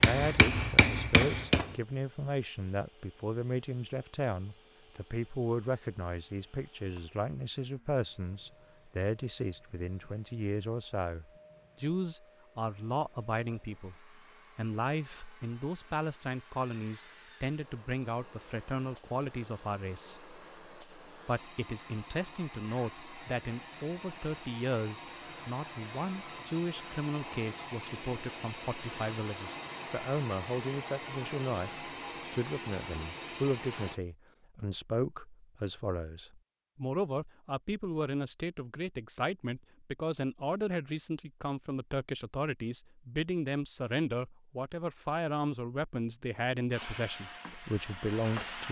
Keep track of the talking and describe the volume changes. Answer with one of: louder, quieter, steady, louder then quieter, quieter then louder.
steady.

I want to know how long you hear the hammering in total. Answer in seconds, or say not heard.
2 s.